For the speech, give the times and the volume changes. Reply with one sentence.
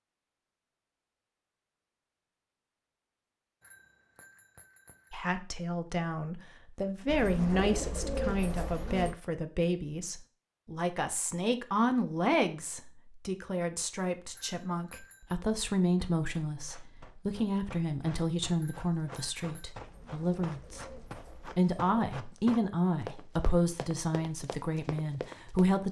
You can hear the speech from 5.1 to 25.8 s, at a steady volume.